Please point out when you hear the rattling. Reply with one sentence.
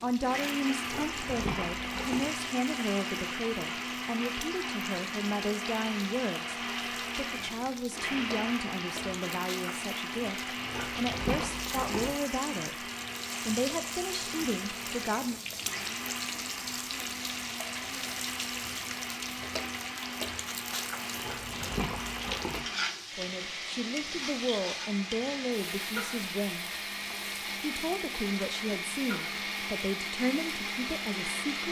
You can hear the rattling from 0.8 to 2.2 s, from 10.6 to 12.2 s and from 21.1 to 22.7 s.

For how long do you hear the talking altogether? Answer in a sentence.
The talking can be heard for 23 seconds in total.